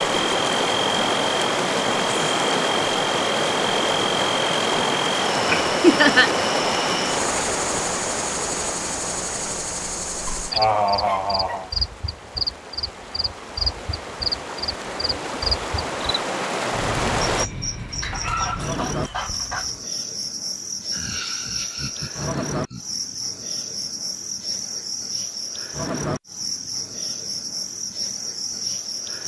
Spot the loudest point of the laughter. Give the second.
6 s.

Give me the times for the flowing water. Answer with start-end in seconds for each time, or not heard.
0.0-17.5.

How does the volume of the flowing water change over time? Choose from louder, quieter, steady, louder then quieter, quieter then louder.
quieter then louder.